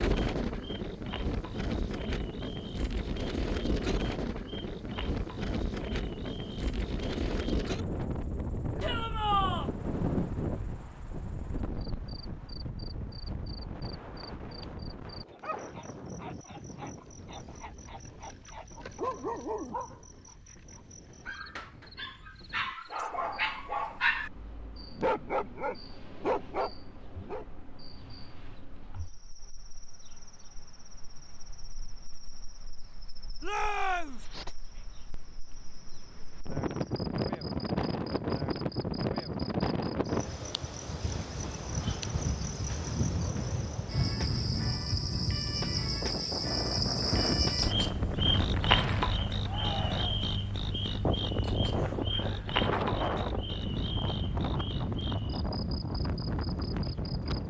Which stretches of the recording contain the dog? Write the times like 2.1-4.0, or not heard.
15.3-27.4.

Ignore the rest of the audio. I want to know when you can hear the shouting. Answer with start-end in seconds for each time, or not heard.
8.8-9.7, 33.4-34.2, 49.5-50.1.